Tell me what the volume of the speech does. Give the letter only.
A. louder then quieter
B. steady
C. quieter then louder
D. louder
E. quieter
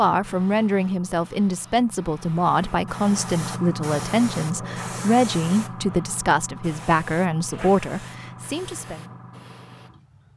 B.